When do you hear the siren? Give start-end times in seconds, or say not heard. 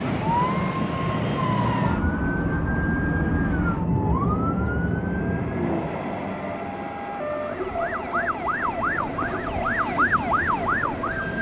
0.0-11.3.